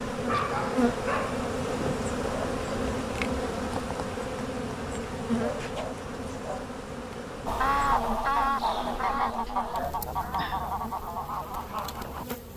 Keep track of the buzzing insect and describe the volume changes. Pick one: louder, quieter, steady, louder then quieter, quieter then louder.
quieter.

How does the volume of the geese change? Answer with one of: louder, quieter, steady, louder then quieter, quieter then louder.
quieter.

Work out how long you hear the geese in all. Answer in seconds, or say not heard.
5 s.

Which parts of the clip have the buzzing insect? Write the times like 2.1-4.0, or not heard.
0.0-12.5.